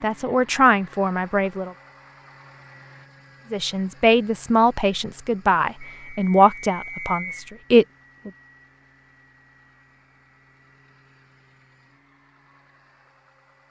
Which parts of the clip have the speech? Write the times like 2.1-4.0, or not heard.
0.0-1.7, 3.5-8.3.